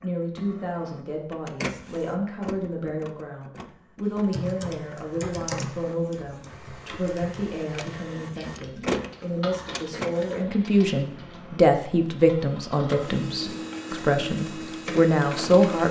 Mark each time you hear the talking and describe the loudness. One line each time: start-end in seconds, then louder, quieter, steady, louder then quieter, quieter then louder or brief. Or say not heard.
0.0-15.8 louder.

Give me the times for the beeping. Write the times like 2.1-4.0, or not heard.
not heard.